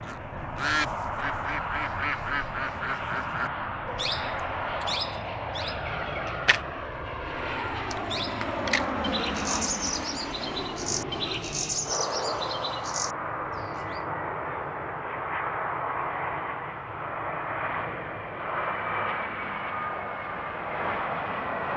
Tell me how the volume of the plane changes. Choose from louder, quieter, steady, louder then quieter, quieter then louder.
steady.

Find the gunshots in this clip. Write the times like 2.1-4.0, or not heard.
not heard.